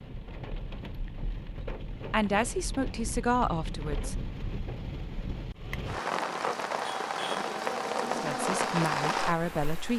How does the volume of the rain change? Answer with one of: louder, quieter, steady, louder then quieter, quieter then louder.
louder.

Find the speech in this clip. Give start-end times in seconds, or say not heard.
2.1-4.2, 8.2-9.9.